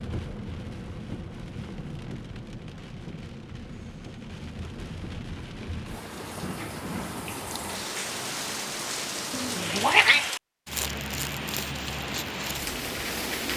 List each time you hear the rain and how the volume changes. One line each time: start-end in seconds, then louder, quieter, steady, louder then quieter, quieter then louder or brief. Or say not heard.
0.0-13.5 louder.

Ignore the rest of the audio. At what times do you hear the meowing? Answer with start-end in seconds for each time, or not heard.
9.3-10.2.